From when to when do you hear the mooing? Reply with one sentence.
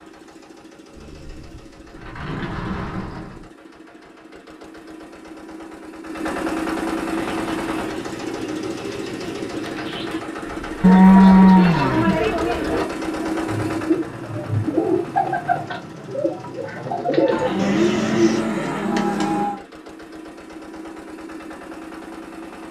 The mooing can be heard from 0.9 to 3.5 s, from 10.8 to 12.8 s and from 17.3 to 19.6 s.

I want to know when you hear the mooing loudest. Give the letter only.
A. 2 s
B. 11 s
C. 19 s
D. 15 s
B.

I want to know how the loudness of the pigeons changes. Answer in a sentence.
The loudness of the pigeons goes up.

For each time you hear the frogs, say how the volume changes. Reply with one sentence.
The frogs can't be heard in this clip.